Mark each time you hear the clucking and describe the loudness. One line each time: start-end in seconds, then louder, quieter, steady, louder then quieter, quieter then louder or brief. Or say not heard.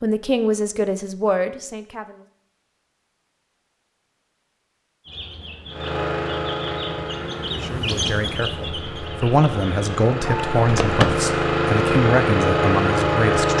5.0-10.5 louder then quieter.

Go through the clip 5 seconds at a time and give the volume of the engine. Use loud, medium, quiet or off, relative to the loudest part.
off, medium, loud.